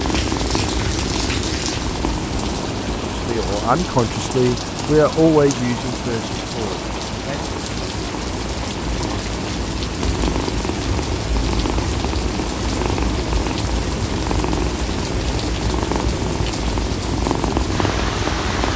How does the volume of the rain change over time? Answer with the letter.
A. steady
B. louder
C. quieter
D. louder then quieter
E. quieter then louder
A.